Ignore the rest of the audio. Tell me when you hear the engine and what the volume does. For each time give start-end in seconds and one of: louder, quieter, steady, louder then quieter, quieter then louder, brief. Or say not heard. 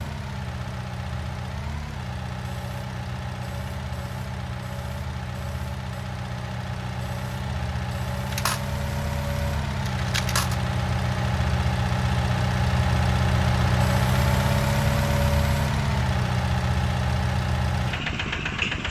0.0-18.8 louder.